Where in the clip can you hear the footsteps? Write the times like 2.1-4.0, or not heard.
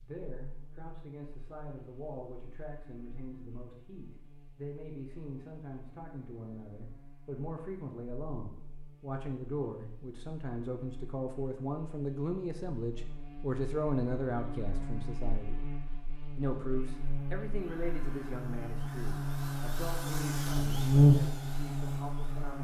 not heard.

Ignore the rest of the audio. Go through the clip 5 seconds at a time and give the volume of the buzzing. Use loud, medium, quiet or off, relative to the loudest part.
quiet, quiet, quiet, quiet, loud.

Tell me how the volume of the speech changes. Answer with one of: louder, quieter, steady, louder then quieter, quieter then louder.
louder then quieter.